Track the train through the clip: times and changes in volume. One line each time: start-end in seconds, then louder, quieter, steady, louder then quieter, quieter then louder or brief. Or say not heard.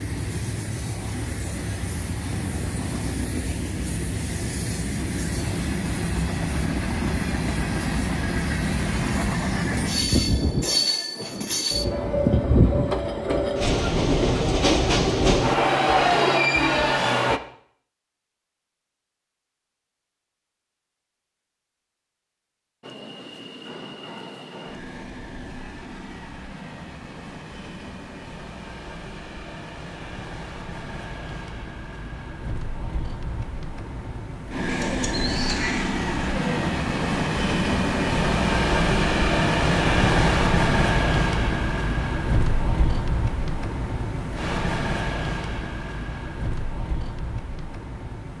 0.0-17.4 louder
22.8-48.3 louder then quieter.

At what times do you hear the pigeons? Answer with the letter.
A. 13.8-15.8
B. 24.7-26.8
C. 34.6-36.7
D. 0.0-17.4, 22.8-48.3
C.